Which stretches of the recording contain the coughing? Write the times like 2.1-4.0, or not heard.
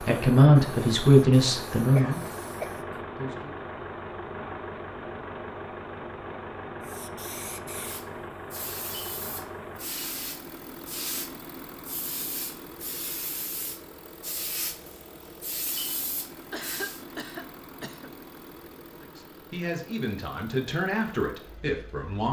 1.9-2.8, 16.5-18.1.